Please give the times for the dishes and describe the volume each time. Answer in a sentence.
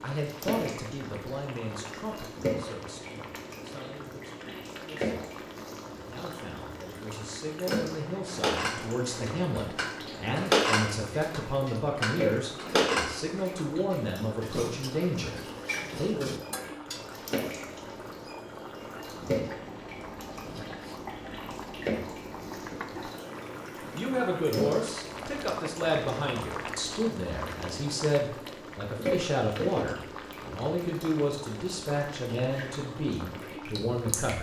You can hear the dishes from 7.7 to 17.1 s, getting louder then quieter.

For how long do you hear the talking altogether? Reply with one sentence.
The talking can be heard for 27 seconds in total.